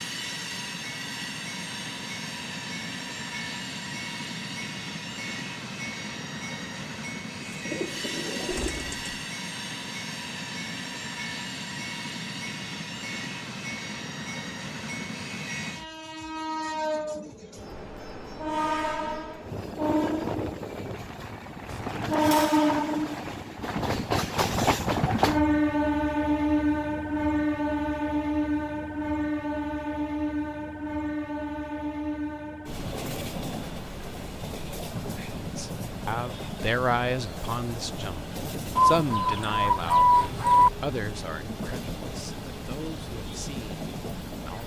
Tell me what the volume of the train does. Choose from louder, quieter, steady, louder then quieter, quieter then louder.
louder then quieter.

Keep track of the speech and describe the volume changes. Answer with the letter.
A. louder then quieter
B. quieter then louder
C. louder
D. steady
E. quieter
E.